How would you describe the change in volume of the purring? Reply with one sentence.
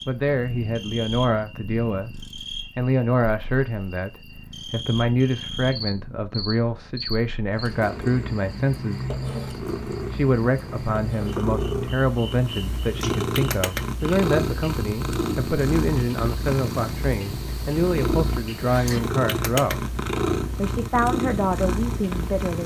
The volume of the purring goes up.